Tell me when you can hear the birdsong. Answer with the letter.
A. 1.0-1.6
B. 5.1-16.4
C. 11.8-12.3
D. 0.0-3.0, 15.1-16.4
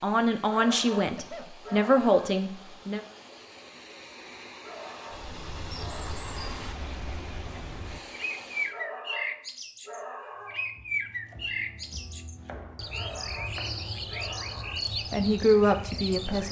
B.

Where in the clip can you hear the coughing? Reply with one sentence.
You can hear the coughing from 1.0 to 1.6 s.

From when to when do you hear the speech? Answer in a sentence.
You can hear the speech from 0.0 to 3.0 s and from 15.1 to 16.4 s.